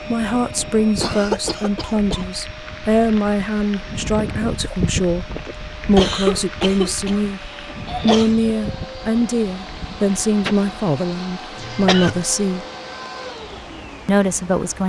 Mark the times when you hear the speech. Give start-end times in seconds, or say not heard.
0.1-7.4, 8.0-12.7, 14.1-14.8.